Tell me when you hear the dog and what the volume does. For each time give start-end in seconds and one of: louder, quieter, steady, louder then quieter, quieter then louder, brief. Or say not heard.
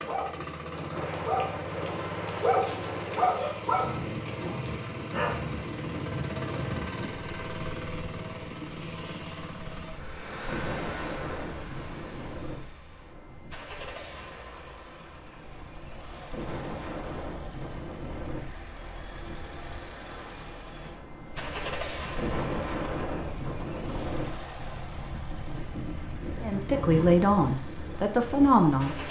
0.0-5.5 louder then quieter.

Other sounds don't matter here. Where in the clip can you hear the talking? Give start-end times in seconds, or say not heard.
26.4-29.0.